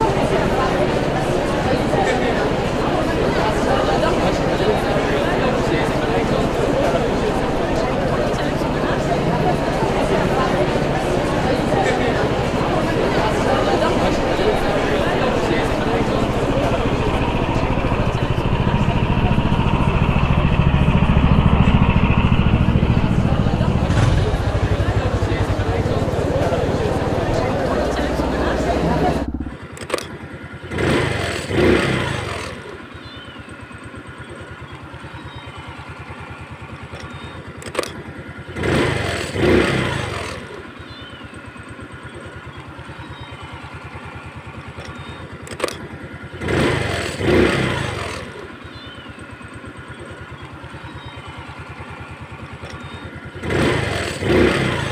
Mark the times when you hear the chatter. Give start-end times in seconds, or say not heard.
0.0-29.3.